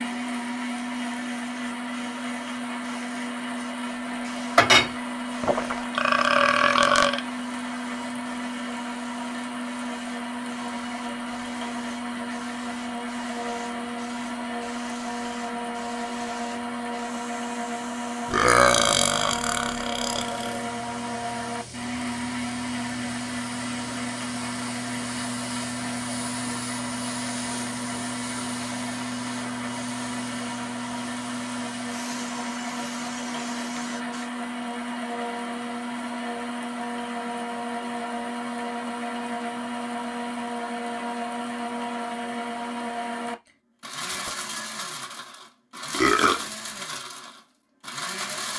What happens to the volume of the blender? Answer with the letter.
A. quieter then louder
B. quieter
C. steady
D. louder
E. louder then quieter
C.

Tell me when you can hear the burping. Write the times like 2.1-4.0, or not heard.
5.4-7.2, 18.2-20.6, 45.9-46.5.